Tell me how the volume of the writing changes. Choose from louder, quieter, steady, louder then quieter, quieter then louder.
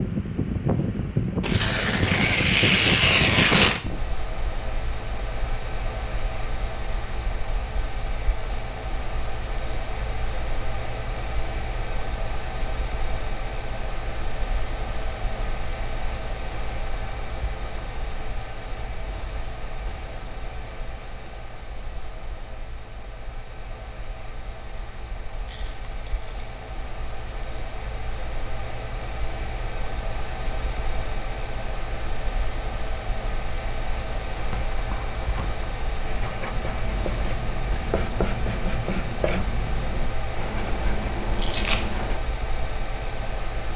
louder.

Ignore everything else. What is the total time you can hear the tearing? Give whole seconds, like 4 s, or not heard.
4 s.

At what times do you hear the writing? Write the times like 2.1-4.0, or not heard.
34.3-42.2.